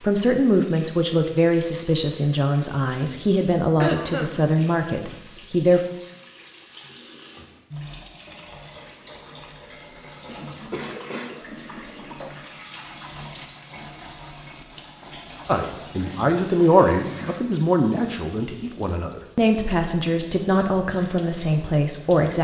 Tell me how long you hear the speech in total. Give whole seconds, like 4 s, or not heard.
13 s.